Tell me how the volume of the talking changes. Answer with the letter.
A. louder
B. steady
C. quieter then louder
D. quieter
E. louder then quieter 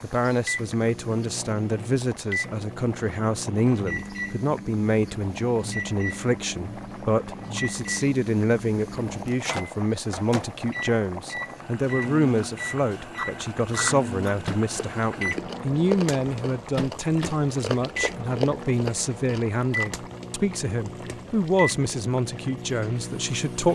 B.